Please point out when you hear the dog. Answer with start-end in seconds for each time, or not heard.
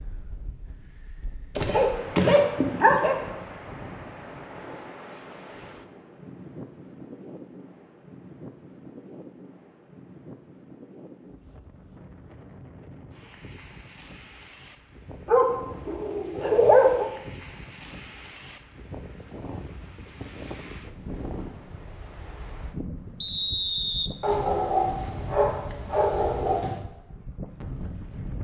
1.6-3.1, 15.2-17.1, 24.2-26.8.